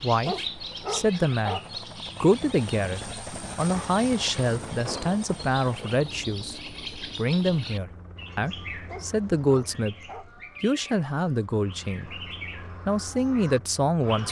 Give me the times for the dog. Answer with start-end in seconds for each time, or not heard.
0.2-1.6, 8.8-10.3.